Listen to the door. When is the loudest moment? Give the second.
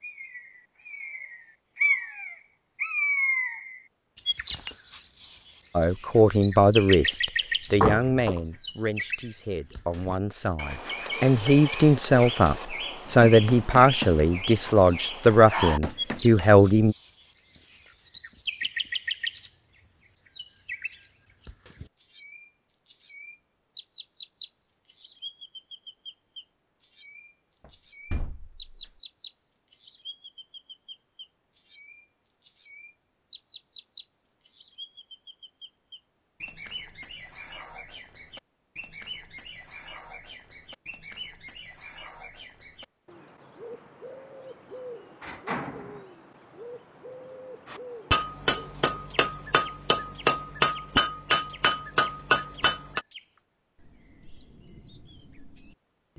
8 s.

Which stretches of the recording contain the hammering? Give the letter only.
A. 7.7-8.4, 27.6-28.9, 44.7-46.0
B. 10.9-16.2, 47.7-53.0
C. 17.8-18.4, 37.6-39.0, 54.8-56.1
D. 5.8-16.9
B.